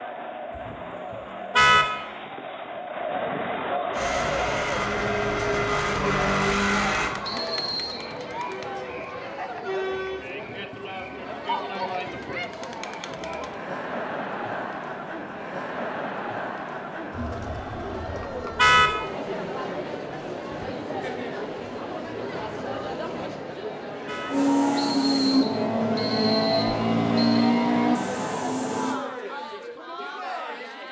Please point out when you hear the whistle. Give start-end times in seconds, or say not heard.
7.2-8.1, 24.8-27.5.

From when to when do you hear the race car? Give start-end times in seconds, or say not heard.
3.9-7.2, 24.3-29.0.